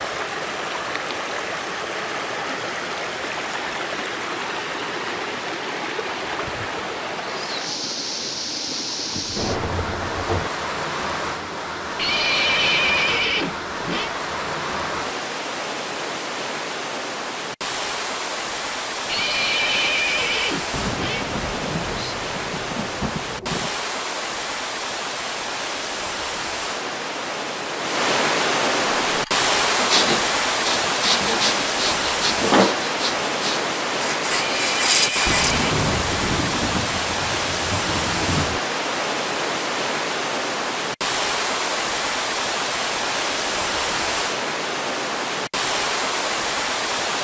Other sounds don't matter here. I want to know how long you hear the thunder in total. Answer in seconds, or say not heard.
8 s.